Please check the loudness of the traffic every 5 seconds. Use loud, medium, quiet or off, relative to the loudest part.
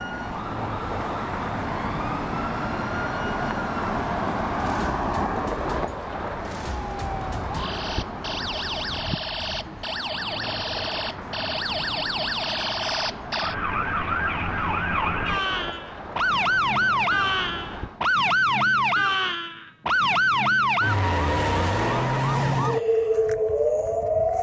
loud, loud, medium, medium, off.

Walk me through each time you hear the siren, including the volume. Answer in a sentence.
You can hear the siren from 0.0 to 24.3 s, getting louder.